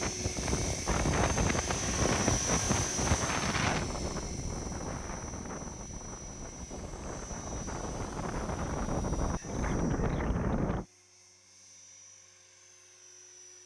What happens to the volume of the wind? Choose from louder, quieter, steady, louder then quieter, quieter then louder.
quieter then louder.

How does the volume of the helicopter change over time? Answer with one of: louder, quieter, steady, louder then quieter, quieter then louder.
quieter.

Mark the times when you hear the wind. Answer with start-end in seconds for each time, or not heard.
0.0-10.8.